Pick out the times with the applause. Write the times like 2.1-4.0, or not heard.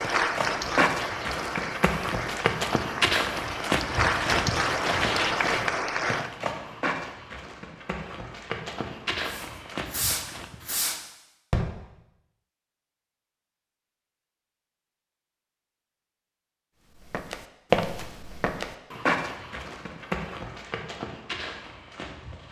0.0-6.3.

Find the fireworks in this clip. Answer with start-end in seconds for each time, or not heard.
9.2-11.7.